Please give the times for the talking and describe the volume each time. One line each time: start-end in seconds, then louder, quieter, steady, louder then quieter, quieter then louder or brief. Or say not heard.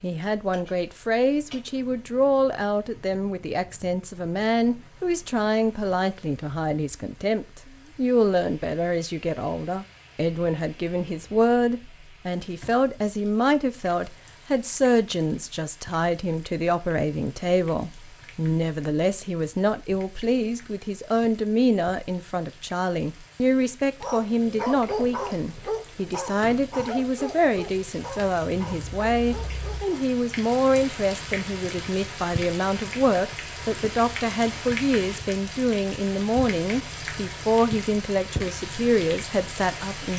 0.0-40.1 steady.